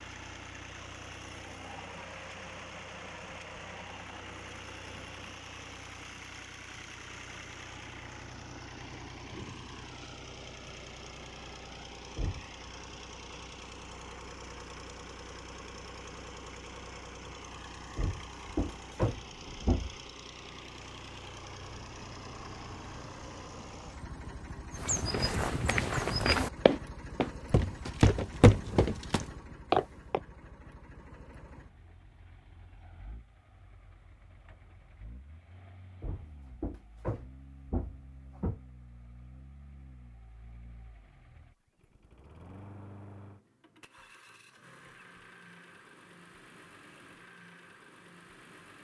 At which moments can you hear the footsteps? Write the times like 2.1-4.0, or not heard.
24.7-30.2.